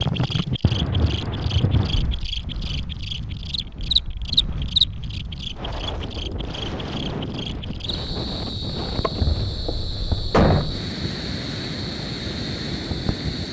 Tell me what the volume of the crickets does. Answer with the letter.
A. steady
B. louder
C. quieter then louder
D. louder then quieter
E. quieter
D.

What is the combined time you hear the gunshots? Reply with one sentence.
The gunshots can be heard for 2 seconds in total.